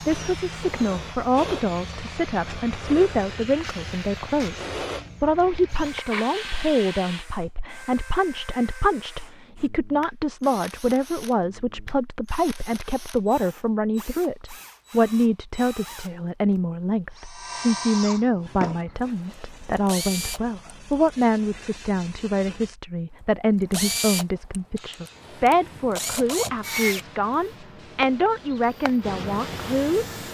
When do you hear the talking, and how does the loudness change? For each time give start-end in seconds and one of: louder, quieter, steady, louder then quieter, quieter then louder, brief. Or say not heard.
0.1-30.1 steady.